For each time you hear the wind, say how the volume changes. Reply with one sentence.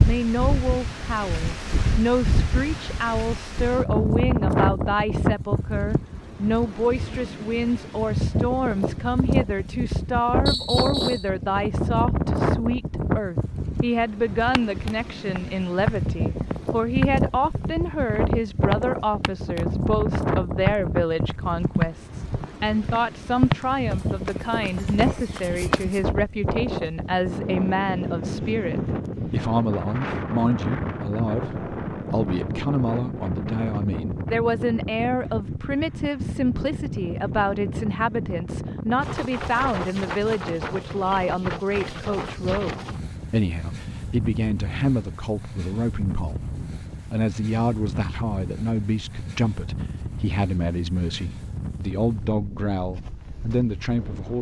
The wind can be heard from 0.0 to 54.3 s, getting quieter.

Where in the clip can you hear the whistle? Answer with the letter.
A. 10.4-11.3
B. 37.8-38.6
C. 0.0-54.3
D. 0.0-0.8
A.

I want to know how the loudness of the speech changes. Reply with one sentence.
The loudness of the speech stays about the same.